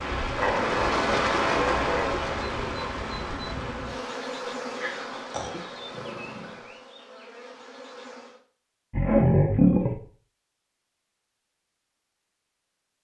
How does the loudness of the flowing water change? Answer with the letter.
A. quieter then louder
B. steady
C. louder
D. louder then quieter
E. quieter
E.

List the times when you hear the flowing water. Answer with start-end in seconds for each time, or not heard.
0.0-6.9.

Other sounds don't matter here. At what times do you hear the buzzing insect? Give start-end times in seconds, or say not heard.
0.0-8.4.